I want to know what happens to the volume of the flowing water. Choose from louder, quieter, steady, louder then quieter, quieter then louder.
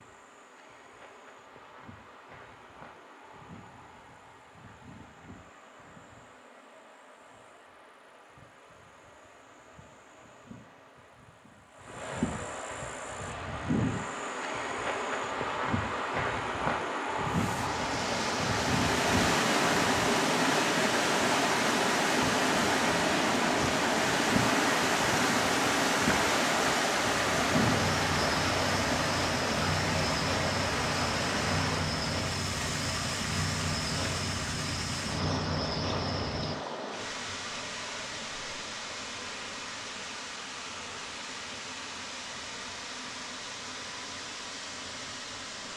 quieter.